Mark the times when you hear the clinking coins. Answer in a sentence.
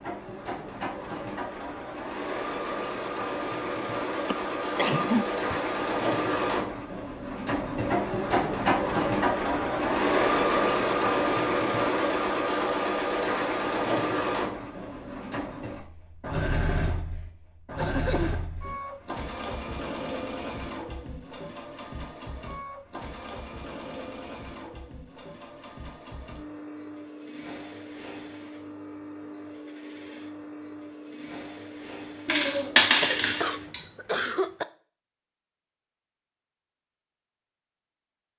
You can hear the clinking coins from 32.2 to 33.8 s.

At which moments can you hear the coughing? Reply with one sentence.
The coughing can be heard from 4.2 to 5.6 s, from 17.8 to 18.4 s and from 33.0 to 34.6 s.